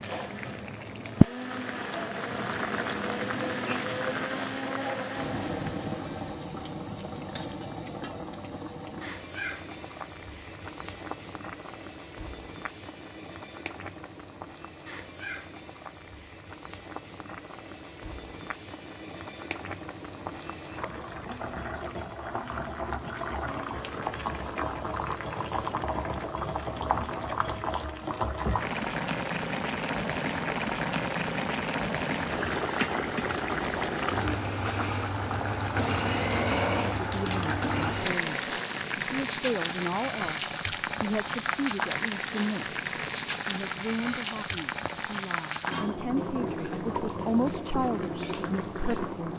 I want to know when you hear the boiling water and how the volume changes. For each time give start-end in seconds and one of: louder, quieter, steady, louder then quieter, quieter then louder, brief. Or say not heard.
0.0-49.3 quieter then louder.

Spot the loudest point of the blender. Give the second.
36 s.